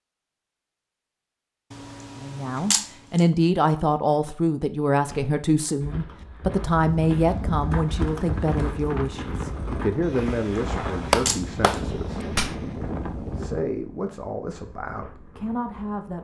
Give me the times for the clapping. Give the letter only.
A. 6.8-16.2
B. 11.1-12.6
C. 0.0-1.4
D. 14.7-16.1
B.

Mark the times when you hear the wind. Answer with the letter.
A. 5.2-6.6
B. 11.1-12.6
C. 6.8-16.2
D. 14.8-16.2
C.